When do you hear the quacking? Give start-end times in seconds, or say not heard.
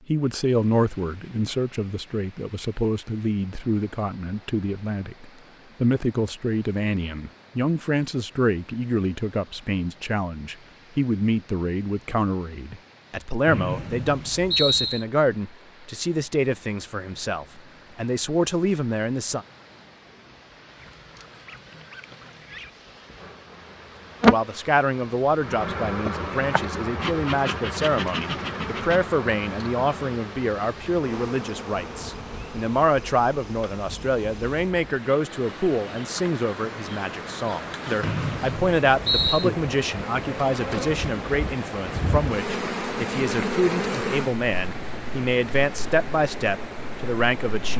20.8-22.7.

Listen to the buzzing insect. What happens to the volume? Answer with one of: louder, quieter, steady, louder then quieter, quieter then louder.
quieter then louder.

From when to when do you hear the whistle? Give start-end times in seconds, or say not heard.
13.4-15.1, 38.0-39.5.